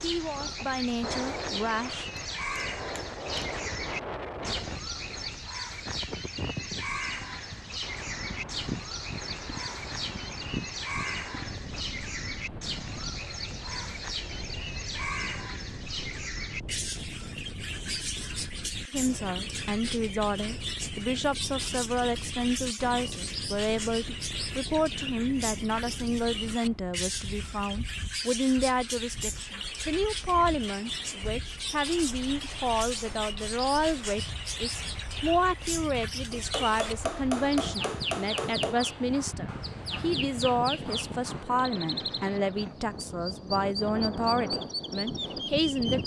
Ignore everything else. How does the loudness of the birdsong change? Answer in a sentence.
The volume of the birdsong stays about the same.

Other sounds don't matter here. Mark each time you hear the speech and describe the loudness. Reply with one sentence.
The speech can be heard briefly from 0.0 to 2.1 s; and from 18.9 to 46.0 s, at a steady volume.